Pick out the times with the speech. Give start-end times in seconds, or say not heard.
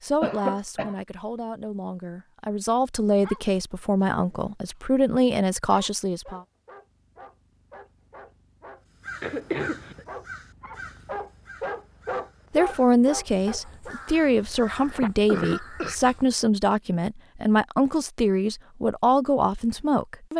0.0-6.4, 12.5-20.3.